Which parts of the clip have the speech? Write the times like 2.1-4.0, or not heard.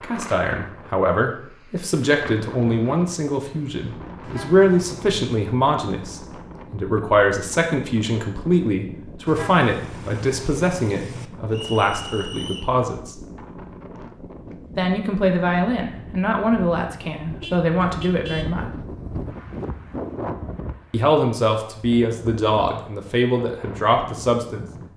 0.0-13.2, 14.8-18.6, 20.9-24.6.